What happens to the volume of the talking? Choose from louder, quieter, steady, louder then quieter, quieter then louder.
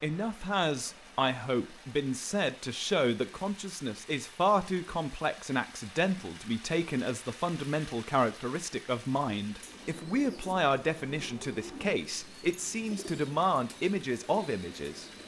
steady.